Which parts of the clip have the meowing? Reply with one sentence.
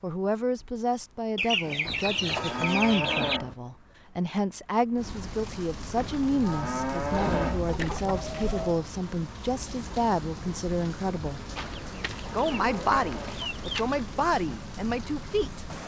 The meowing can't be heard in this clip.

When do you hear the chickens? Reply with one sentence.
You can hear the chickens from 1.4 to 3.4 s, from 7.1 to 8.8 s and from 11.6 to 14.0 s.